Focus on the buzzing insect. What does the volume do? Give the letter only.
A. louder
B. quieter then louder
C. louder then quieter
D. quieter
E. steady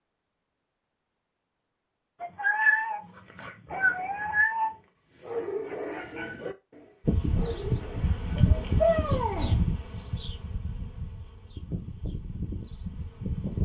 D.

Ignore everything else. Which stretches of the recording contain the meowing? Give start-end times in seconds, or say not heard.
2.2-4.7, 8.3-9.6.